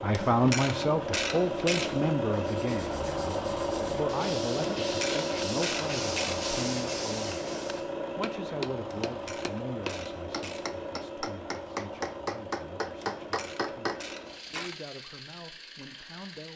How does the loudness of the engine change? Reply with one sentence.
The volume of the engine goes down.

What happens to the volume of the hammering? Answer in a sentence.
The loudness of the hammering goes up.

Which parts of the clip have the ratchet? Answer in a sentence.
You can hear the ratchet from 0.1 to 2.1 s, from 4.8 to 6.5 s, from 9.1 to 10.8 s and from 13.0 to 14.8 s.